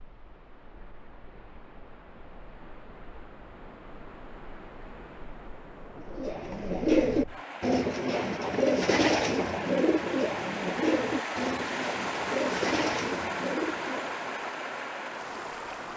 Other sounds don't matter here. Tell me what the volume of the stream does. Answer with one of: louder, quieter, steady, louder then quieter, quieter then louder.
louder.